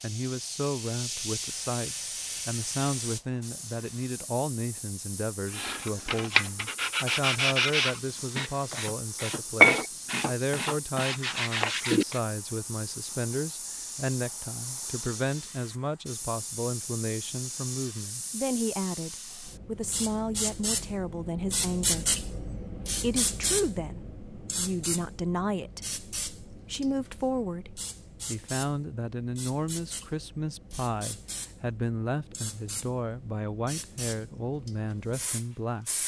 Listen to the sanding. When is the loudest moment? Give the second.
10 s.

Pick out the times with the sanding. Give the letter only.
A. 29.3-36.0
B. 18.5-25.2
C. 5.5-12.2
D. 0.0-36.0
C.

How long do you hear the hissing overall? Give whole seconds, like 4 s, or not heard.
36 s.